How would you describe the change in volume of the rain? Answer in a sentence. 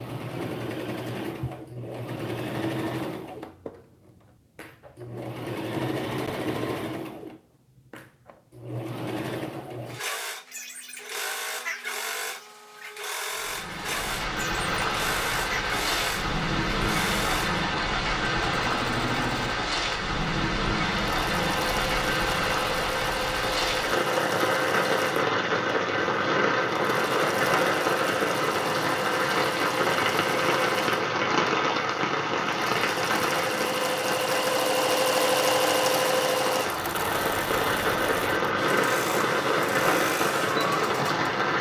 The loudness of the rain stays about the same.